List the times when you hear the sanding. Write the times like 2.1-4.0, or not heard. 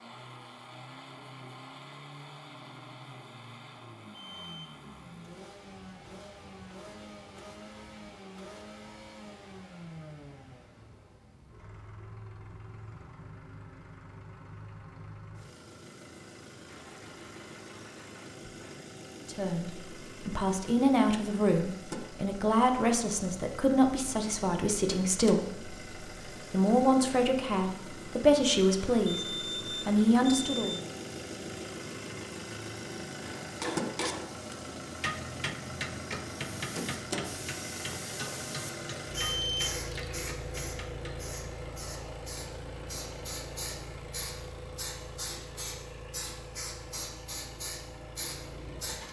16.6-18.8.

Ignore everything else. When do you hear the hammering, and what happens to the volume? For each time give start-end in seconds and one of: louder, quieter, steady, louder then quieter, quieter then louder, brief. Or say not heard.
33.2-41.2 quieter.